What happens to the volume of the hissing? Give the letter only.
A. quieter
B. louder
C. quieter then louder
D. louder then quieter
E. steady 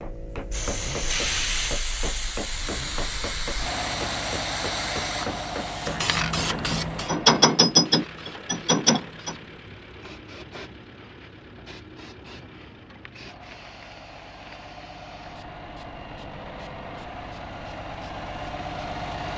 A.